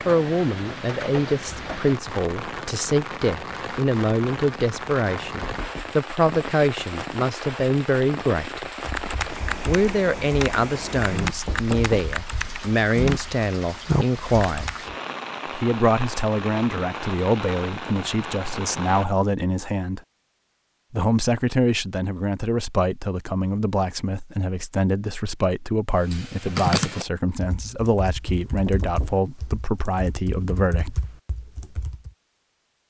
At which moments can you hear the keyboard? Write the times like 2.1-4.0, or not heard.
8.8-14.9, 26.0-32.1.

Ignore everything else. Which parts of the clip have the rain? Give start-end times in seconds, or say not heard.
0.0-19.1.